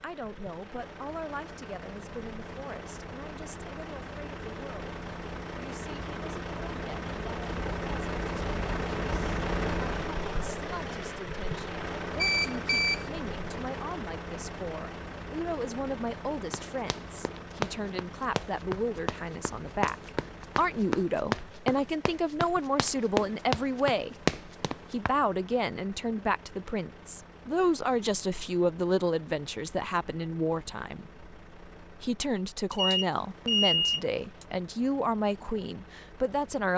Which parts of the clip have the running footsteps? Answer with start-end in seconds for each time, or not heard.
16.5-25.1.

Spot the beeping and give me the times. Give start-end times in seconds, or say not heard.
12.2-13.1, 32.7-34.5.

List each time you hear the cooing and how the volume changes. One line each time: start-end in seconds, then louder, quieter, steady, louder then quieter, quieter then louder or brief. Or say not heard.
not heard.